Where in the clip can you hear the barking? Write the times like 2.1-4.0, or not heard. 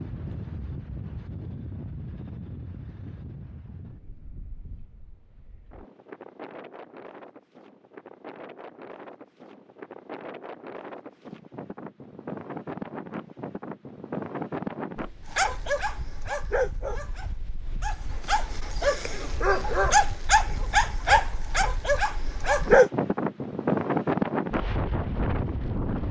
15.3-22.9.